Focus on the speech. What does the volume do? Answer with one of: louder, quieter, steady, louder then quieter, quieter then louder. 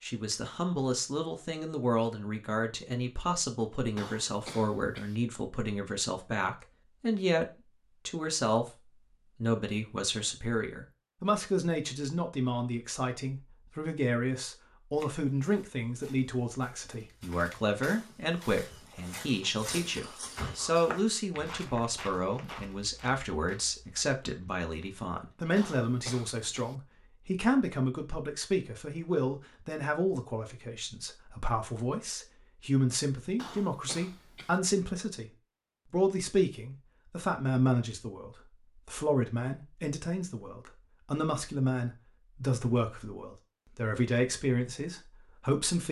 steady.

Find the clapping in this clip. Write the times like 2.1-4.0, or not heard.
not heard.